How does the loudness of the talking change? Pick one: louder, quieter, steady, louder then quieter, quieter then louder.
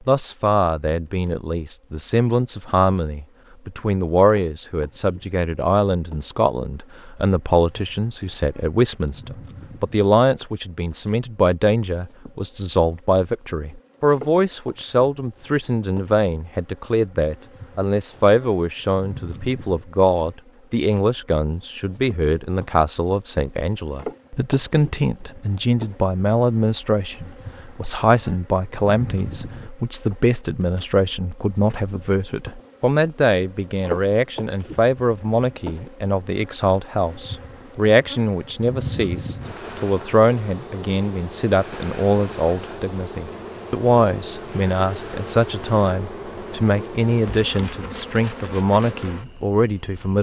steady.